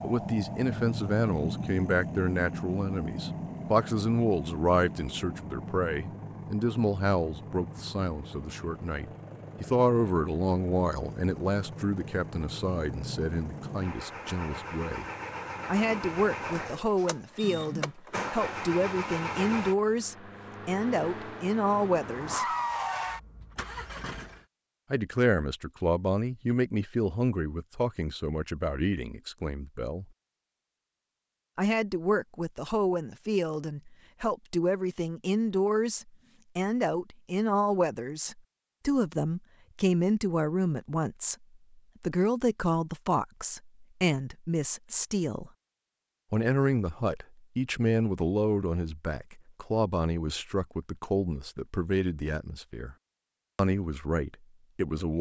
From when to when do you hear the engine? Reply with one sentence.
You can hear the engine from 0.0 to 24.4 s.